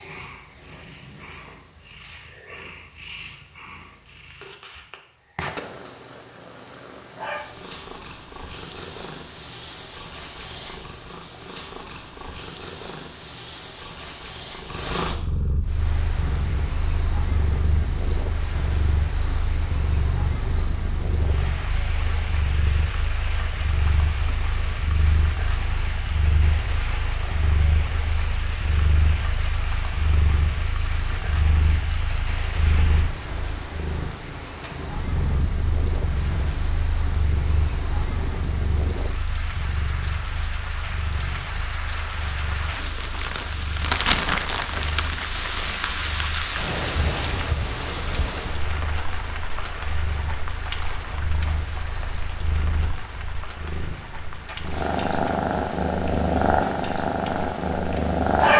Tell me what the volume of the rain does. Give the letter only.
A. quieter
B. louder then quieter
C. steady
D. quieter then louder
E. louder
B.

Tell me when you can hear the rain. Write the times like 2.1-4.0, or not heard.
15.7-58.2.